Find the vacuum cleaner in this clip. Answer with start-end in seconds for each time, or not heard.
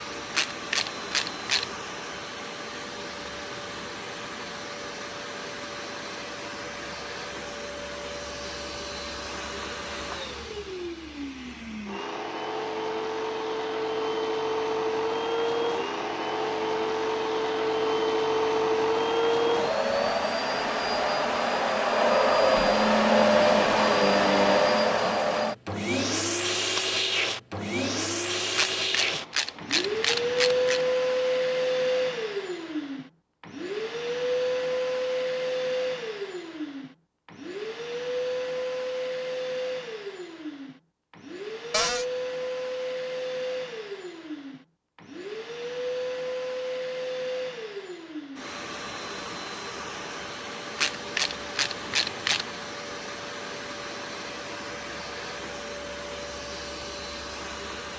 0.0-57.9.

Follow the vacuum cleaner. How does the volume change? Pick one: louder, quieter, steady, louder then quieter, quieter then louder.
louder then quieter.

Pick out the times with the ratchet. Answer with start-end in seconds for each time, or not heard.
0.3-1.8, 28.6-30.9, 50.8-52.5.